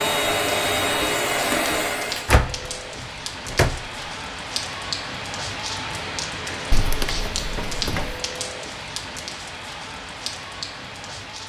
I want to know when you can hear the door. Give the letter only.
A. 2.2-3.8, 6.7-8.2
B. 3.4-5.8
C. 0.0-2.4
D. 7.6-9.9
A.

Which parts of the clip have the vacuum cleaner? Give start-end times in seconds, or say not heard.
0.0-2.4.